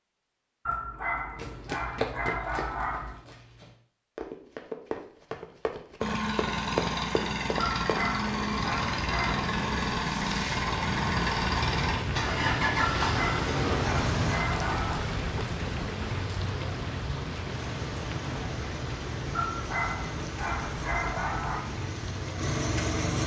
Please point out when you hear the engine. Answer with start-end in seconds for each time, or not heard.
6.0-14.4, 17.5-23.2.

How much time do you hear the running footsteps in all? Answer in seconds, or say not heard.
7 s.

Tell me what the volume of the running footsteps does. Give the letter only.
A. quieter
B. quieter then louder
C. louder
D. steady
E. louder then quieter
B.